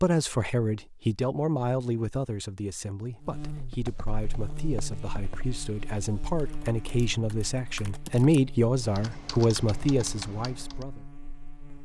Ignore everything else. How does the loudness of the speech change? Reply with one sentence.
The volume of the speech goes down, then up.